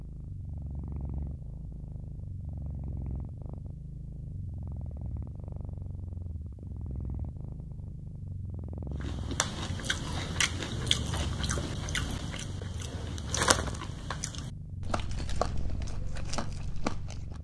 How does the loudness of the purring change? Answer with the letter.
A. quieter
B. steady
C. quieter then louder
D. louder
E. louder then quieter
B.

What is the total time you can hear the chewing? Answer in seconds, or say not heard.
8 s.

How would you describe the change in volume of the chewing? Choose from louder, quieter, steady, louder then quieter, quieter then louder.
quieter then louder.